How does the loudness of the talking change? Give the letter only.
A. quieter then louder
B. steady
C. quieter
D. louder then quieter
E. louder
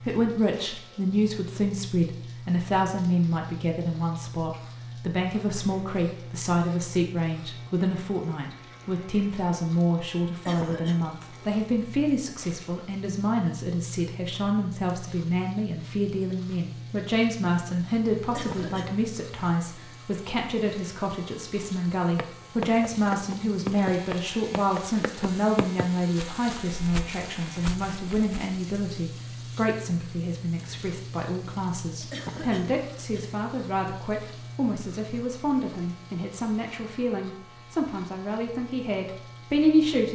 B.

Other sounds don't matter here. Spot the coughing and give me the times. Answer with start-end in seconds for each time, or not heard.
10.4-11.1, 18.3-18.9, 32.1-33.2.